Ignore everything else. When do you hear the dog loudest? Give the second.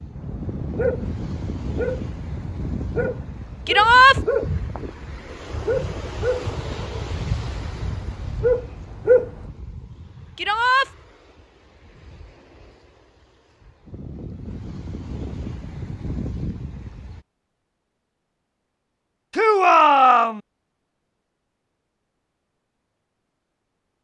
9 s.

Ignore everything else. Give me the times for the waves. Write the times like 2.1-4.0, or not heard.
0.0-17.2.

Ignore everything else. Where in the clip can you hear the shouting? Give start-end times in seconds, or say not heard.
3.6-4.2, 10.3-10.9, 19.3-20.4.